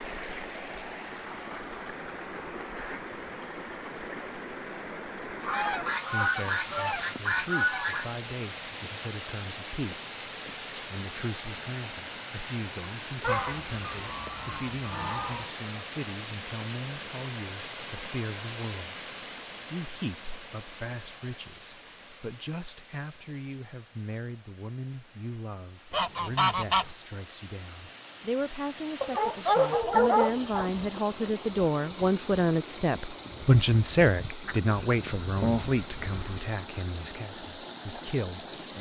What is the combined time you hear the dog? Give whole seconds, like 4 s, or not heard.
2 s.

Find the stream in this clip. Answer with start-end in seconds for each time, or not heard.
0.0-38.7.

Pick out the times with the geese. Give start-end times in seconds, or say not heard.
5.4-8.1, 13.2-15.5, 25.9-26.9, 34.5-36.4.